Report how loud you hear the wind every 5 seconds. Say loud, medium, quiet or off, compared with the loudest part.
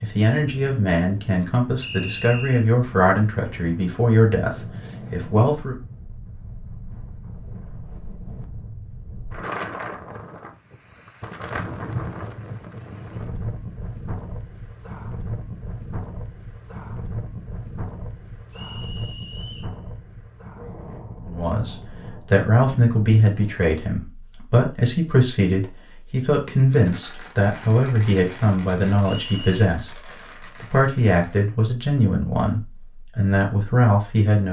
medium, loud, loud, loud, medium, off, off.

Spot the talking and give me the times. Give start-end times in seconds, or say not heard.
0.0-5.8, 21.2-34.4.